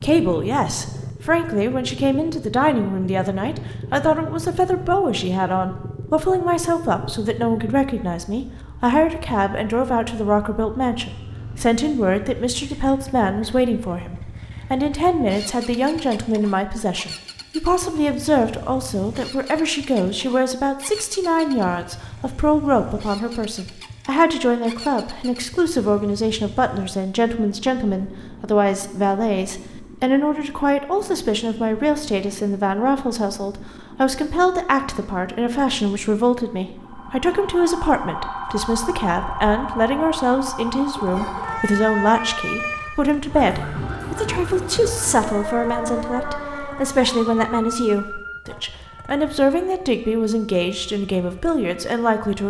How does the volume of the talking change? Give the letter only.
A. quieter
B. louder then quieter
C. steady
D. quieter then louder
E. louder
C.